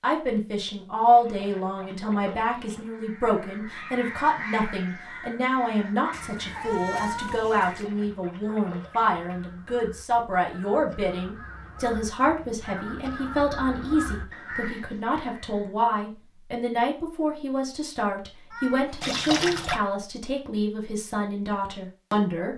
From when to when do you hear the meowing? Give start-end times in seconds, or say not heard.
6.1-7.9, 18.5-18.9.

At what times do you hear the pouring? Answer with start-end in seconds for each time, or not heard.
1.1-2.9, 7.7-9.4, 19.0-19.8.